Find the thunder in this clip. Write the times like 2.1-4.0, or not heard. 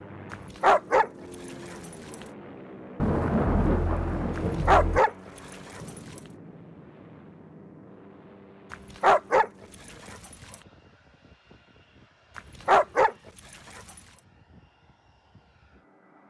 3.0-5.0.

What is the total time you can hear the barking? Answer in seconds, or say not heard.
5 s.